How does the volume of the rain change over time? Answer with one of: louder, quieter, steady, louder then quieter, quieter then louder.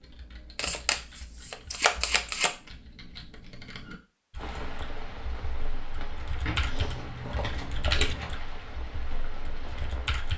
steady.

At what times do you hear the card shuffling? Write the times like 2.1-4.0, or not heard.
0.6-2.5, 6.4-8.3.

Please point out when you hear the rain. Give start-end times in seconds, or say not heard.
4.3-10.3.